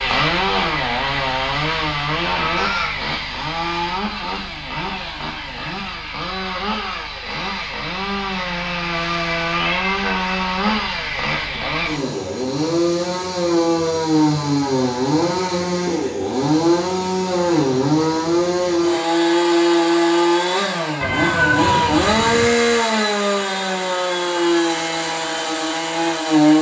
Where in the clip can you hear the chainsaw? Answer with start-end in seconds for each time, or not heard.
0.0-26.5.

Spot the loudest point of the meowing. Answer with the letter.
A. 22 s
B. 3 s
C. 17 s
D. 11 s
A.